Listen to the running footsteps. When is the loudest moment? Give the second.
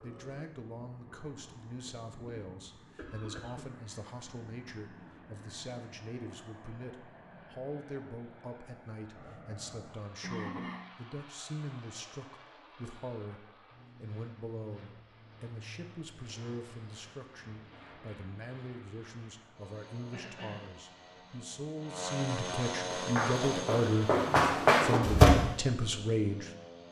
25 s.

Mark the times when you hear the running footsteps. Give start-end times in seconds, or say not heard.
22.9-25.3.